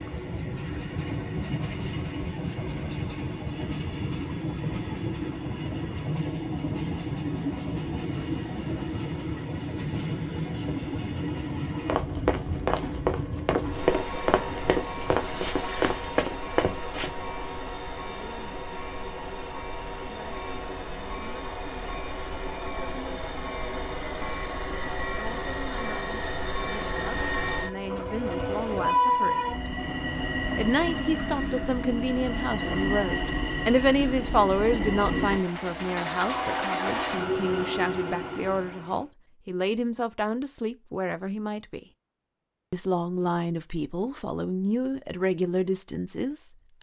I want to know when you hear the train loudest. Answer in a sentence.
The loudest moment of the train is at 29 seconds.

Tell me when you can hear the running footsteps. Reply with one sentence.
You can hear the running footsteps from 11.8 to 17.1 s.